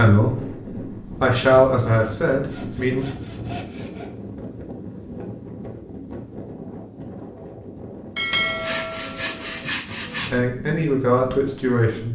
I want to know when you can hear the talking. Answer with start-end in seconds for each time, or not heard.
0.0-0.5, 1.2-3.0, 10.3-12.0.